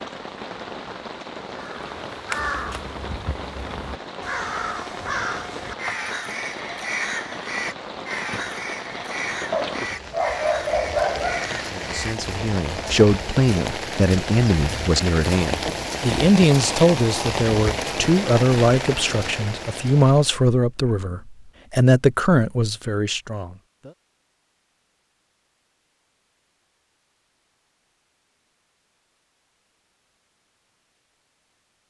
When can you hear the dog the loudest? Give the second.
11 s.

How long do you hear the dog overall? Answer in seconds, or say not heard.
2 s.